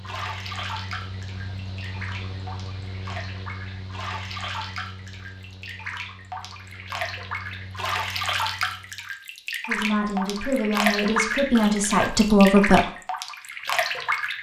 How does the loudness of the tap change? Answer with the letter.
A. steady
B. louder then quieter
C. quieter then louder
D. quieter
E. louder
E.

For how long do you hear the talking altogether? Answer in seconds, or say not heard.
3 s.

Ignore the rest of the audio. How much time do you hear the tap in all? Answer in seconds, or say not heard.
14 s.